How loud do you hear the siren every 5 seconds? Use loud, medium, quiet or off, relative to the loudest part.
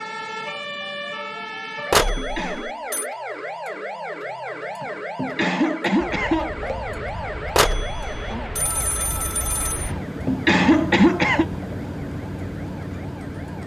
loud, loud, quiet.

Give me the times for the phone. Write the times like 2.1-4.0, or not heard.
1.9-3.0, 7.5-9.9.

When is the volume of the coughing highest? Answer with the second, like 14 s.
11 s.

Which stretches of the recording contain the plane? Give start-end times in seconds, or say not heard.
6.0-13.6.